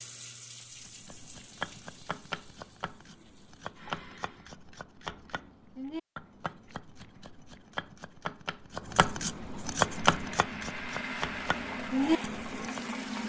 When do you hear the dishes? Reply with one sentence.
The dishes can't be heard in this clip.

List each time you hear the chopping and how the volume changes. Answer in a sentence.
The chopping can be heard from 0.7 to 12.8 s, getting louder.